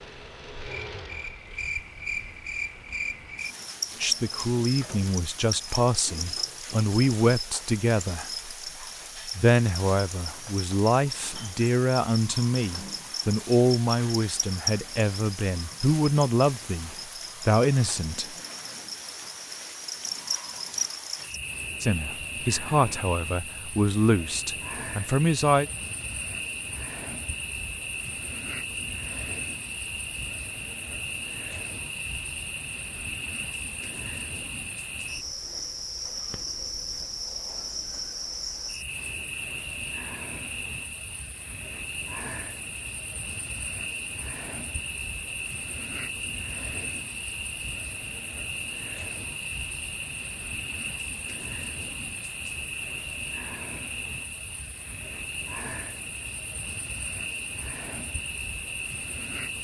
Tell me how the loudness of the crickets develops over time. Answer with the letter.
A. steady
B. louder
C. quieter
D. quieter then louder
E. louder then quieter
A.